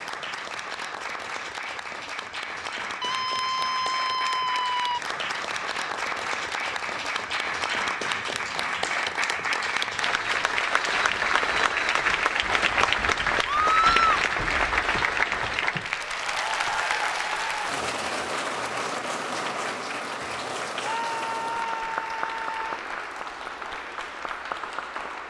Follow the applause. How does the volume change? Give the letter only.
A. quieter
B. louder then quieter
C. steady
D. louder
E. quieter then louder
B.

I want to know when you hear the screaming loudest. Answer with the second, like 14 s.
14 s.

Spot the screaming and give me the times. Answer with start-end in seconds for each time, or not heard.
3.0-5.0, 13.4-14.2, 20.8-22.6.